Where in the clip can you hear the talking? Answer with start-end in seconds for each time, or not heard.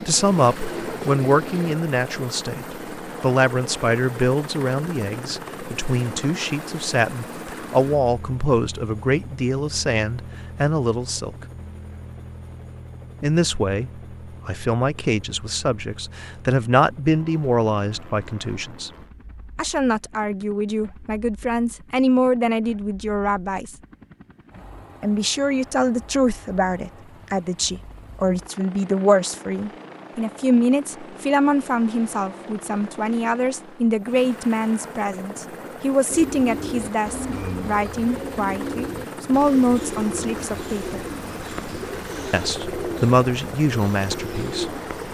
0.1-11.3, 13.2-18.9, 19.6-23.8, 25.0-41.0, 42.3-44.8.